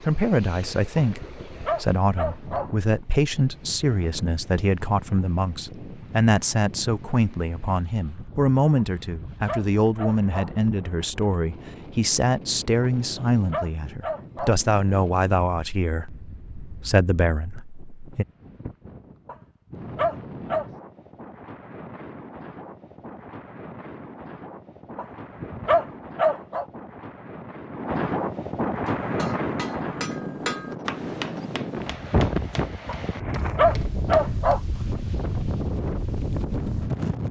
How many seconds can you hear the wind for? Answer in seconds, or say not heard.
37 s.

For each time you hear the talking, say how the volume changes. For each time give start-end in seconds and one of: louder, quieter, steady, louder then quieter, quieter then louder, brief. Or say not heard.
0.0-18.2 steady.